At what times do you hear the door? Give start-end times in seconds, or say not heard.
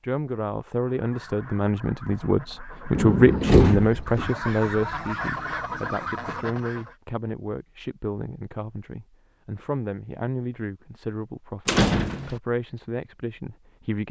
3.0-4.3, 11.7-12.4.